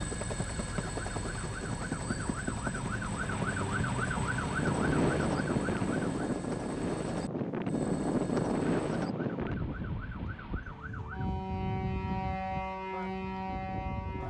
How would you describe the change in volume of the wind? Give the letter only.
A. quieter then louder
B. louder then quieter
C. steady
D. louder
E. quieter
E.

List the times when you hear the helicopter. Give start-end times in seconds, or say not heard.
0.0-9.1.